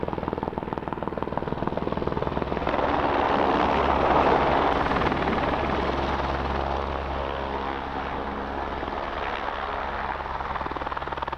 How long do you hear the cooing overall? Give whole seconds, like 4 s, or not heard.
2 s.